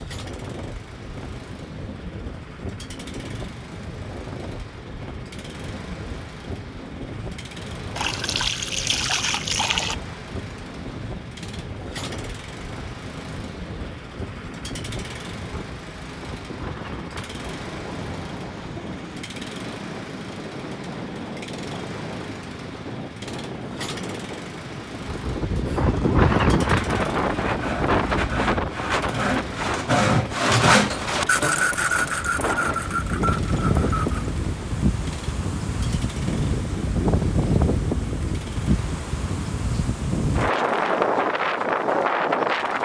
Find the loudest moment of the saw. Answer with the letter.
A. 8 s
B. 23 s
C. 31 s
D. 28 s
C.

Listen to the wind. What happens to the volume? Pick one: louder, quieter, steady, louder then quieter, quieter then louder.
louder.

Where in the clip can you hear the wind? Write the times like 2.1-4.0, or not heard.
0.0-42.8.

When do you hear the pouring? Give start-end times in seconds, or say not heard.
8.0-9.9.